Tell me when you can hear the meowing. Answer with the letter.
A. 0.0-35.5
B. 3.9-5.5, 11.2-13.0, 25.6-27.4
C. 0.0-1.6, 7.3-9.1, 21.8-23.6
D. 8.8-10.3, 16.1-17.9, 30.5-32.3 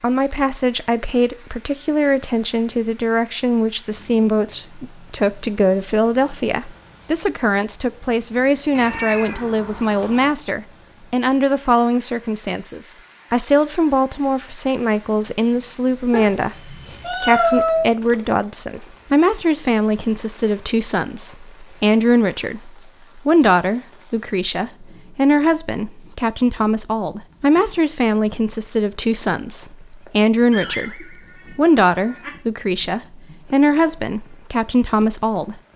D.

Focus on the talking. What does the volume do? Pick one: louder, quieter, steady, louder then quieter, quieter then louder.
steady.